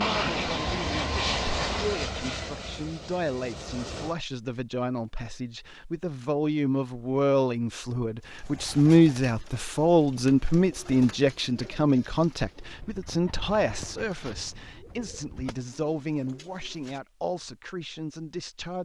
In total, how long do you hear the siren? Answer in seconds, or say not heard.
not heard.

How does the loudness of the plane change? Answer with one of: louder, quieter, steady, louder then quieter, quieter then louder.
quieter.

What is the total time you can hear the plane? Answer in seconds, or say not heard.
4 s.